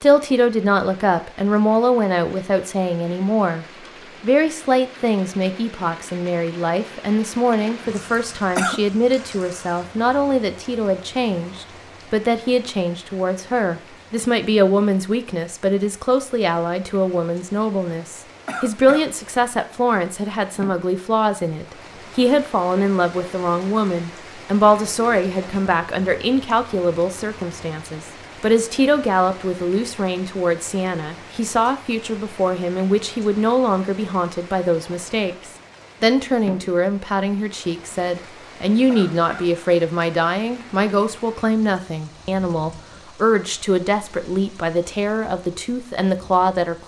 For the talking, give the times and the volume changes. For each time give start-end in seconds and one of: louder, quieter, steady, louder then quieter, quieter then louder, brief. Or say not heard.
0.0-46.8 steady.